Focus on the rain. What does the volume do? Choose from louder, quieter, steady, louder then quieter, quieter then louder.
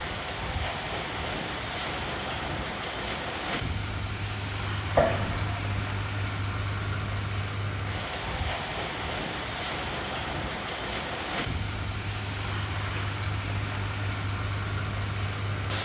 steady.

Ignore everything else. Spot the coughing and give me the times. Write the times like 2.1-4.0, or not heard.
5.0-5.8.